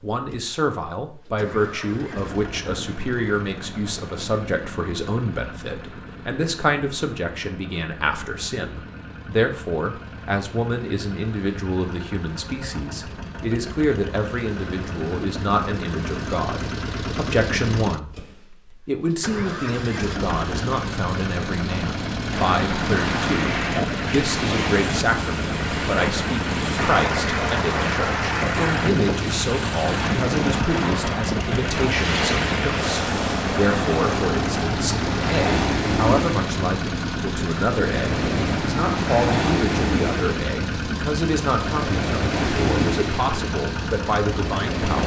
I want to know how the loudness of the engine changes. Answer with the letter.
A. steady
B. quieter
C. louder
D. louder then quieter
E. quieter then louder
C.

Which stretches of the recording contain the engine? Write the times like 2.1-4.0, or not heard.
0.1-45.0.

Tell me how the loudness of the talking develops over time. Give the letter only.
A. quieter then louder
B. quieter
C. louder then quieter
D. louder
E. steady
E.